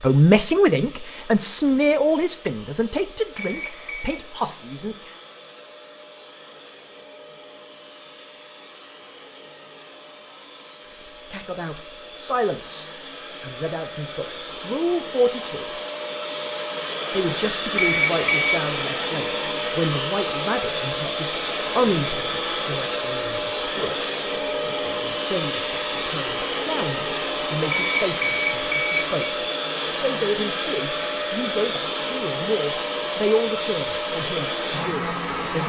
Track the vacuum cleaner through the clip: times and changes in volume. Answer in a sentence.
The vacuum cleaner can be heard from 0.0 to 35.6 s, getting louder.